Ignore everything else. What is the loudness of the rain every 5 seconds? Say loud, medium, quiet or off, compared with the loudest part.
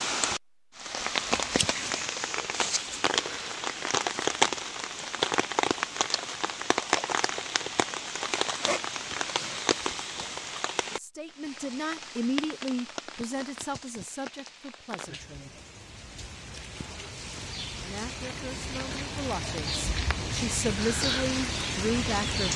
loud, loud, medium, medium, loud.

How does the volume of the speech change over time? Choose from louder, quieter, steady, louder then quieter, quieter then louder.
quieter then louder.